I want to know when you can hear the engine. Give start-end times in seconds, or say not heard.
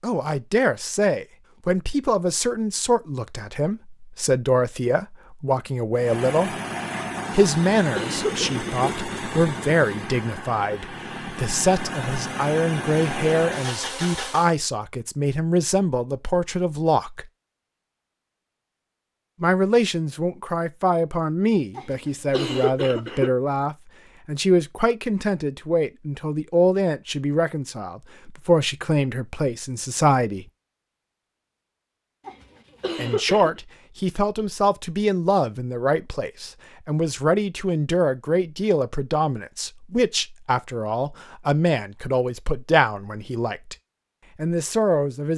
6.0-14.6.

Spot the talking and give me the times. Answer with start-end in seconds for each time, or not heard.
0.0-6.5, 7.3-17.2, 19.4-30.4, 33.0-43.8, 44.4-45.3.